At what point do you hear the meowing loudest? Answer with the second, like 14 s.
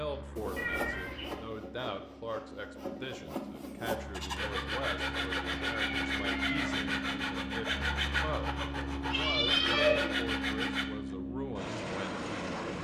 10 s.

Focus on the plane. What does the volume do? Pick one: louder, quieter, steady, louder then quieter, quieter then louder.
louder.